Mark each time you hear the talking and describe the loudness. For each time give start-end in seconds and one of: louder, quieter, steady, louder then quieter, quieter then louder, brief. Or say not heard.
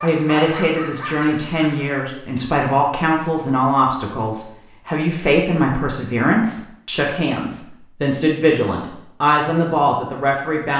0.0-10.7 steady.